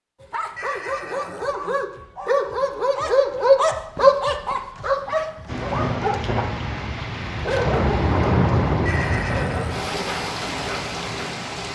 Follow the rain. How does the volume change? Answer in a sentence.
The volume of the rain goes up, then down.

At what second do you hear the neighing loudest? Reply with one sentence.
The loudest moment of the neighing is at 9 seconds.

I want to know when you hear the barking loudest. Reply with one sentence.
The volume of the barking peaks at 4 seconds.